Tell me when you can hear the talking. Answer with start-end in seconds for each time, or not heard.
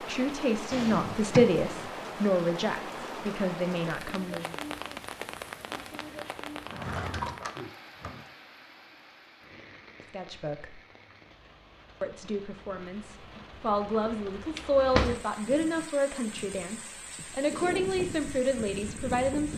0.0-4.5, 10.1-10.8, 12.0-19.5.